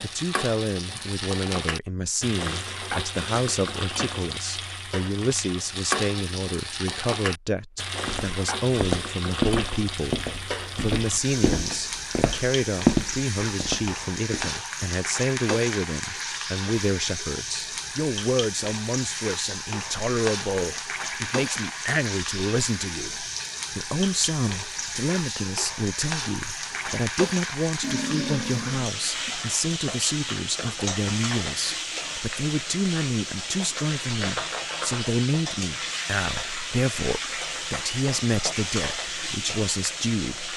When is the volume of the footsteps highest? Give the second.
13 s.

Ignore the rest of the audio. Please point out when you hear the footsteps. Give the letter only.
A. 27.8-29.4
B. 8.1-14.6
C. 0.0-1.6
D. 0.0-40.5
B.